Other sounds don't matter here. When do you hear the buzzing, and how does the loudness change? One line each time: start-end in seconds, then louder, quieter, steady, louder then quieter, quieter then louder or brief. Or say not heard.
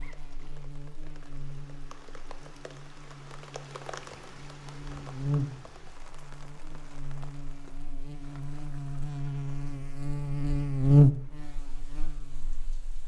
0.0-13.0 louder.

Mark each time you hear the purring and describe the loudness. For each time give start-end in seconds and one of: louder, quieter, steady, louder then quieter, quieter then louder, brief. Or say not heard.
not heard.